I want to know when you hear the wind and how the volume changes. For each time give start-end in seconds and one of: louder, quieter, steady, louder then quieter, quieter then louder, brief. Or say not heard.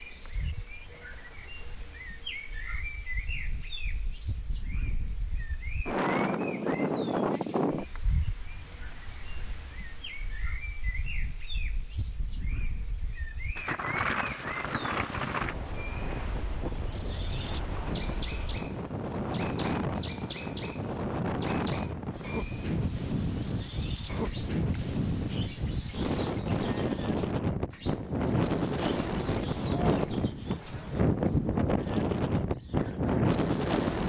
0.0-34.0 louder.